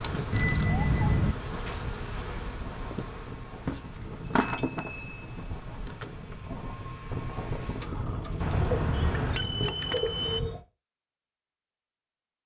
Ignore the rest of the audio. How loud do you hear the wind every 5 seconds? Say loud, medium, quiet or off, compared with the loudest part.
medium, loud, off.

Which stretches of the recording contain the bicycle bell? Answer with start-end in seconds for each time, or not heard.
0.3-1.4, 4.4-5.8, 8.4-10.4.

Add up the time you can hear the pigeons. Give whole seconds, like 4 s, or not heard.
3 s.